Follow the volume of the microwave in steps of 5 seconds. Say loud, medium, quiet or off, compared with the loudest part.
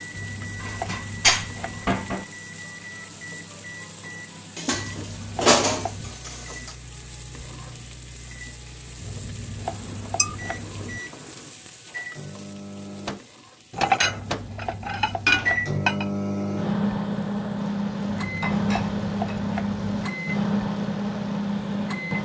quiet, quiet, medium, loud, loud.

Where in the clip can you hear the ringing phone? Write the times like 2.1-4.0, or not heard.
not heard.